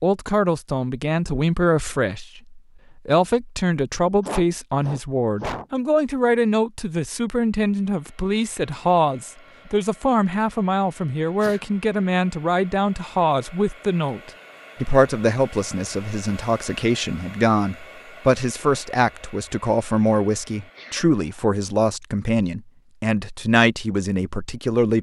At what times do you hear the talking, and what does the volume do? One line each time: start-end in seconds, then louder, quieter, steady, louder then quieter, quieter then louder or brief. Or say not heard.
0.0-24.9 steady.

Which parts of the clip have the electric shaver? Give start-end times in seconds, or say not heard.
not heard.